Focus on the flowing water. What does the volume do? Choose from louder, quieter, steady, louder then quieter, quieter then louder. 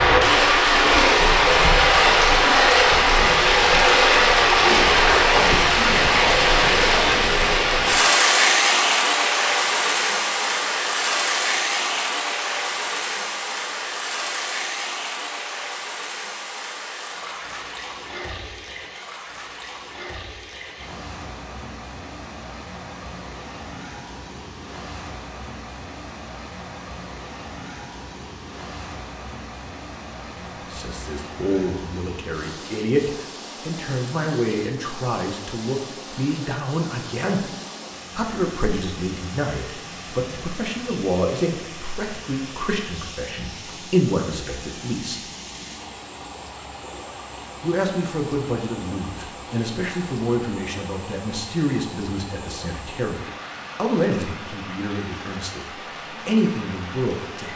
quieter.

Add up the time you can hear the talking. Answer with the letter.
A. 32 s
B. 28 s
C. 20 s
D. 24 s
D.